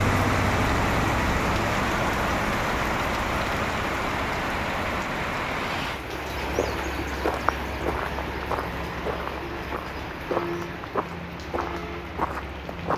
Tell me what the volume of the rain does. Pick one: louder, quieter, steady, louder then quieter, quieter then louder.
quieter.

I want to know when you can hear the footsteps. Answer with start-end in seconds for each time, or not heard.
6.3-12.9.